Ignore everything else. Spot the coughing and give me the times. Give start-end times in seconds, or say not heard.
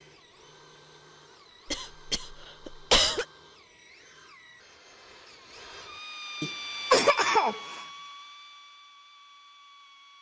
1.6-3.2, 6.4-7.8.